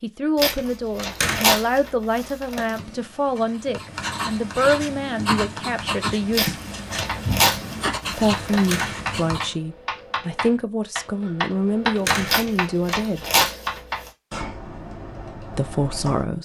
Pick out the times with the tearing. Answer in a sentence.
The tearing can be heard from 0.3 to 2.7 s, from 6.3 to 8.8 s and from 12.2 to 14.1 s.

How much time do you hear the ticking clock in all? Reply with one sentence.
You can't hear the ticking clock here.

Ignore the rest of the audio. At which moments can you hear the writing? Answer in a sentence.
You can hear the writing from 2.6 to 9.6 s.